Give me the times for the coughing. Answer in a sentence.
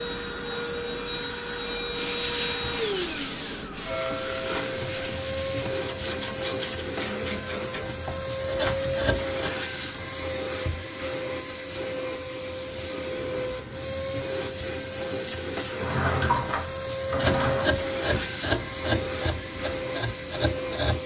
You can't hear the coughing here.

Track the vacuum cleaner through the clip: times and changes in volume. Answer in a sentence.
You can hear the vacuum cleaner from 0.0 to 21.0 s, at a steady volume.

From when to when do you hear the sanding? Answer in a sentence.
You can hear the sanding from 1.9 to 9.5 s and from 17.1 to 21.0 s.